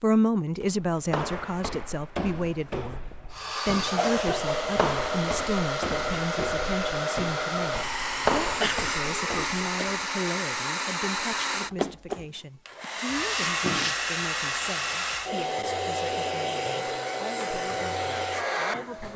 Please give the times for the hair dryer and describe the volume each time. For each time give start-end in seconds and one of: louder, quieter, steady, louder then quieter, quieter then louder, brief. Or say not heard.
3.3-19.1 steady.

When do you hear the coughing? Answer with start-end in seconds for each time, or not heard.
4.0-4.7, 8.6-9.9, 12.8-13.9.